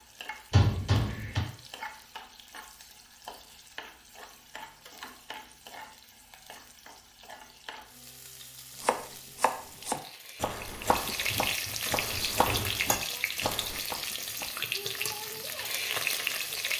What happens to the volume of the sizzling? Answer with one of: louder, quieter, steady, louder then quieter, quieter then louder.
louder.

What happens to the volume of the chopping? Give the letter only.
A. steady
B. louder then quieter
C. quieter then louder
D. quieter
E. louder
D.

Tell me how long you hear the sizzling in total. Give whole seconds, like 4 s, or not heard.
17 s.